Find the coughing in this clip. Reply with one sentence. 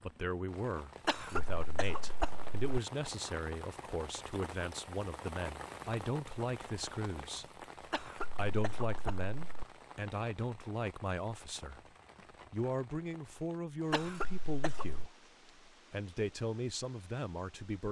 The coughing can be heard from 1.1 to 2.6 s, from 7.9 to 9.7 s and from 13.9 to 15.1 s.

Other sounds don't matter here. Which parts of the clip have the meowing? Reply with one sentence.
The meowing can't be heard in this clip.